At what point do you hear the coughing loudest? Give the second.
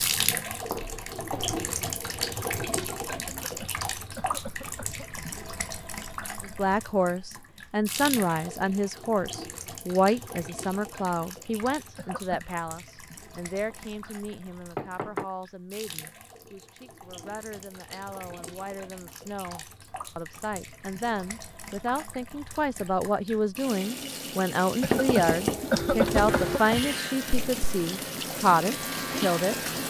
26 s.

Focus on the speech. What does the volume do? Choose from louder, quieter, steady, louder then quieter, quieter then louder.
quieter then louder.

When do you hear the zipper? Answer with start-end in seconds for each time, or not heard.
not heard.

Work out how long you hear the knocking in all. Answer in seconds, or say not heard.
4 s.